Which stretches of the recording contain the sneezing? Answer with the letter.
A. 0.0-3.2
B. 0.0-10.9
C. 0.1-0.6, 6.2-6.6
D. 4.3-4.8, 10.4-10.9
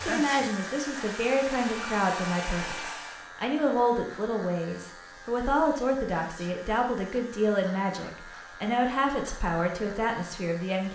C.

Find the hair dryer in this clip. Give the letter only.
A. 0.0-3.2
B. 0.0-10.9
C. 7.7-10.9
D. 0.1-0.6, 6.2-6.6
A.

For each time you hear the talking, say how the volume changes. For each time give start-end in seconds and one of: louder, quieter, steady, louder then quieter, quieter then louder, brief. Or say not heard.
0.0-10.9 steady.